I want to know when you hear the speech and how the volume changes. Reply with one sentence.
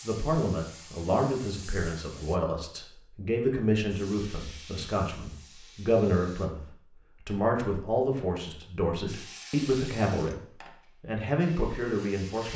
The speech can be heard from 0.0 to 12.5 s, at a steady volume.